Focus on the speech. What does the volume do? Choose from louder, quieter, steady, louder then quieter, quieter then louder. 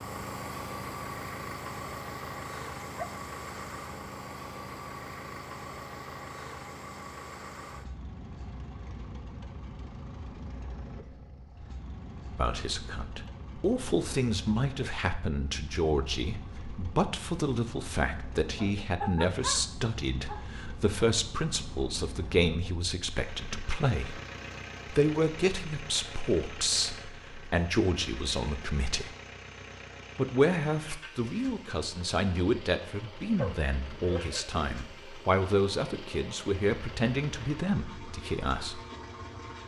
steady.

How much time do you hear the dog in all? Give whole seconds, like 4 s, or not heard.
4 s.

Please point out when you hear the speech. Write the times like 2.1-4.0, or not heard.
12.3-24.2, 24.9-29.1, 30.1-38.8.